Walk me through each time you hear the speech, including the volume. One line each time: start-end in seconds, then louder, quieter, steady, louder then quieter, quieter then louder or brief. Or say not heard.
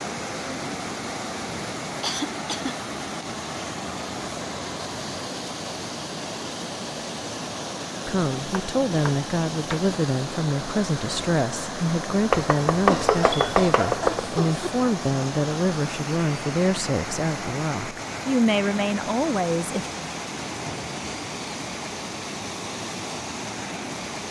8.1-19.9 steady.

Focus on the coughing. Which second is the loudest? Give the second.
13 s.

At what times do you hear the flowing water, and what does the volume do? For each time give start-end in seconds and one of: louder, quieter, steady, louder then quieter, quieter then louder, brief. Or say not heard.
0.0-24.2 steady.